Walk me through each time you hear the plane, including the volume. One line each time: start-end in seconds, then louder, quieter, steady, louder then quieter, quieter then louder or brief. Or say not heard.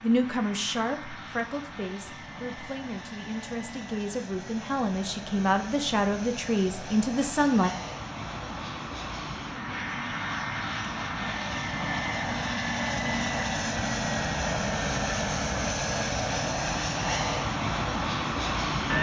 0.0-18.9 louder.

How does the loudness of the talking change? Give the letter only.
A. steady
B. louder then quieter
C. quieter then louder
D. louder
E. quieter
C.